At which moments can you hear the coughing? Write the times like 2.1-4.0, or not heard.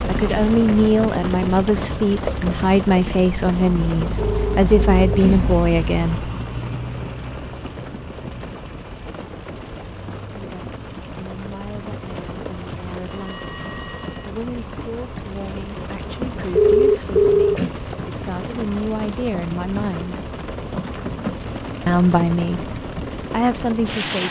not heard.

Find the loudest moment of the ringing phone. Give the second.
17 s.